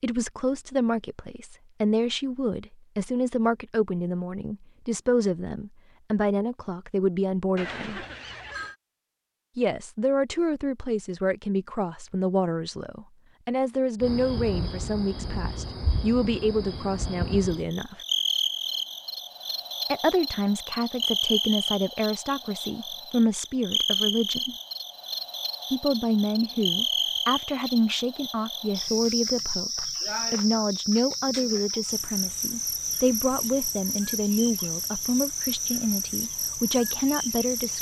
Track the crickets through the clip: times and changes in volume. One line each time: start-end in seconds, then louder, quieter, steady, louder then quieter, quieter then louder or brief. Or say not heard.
14.0-37.7 steady.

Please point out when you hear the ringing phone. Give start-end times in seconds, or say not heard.
7.5-8.8.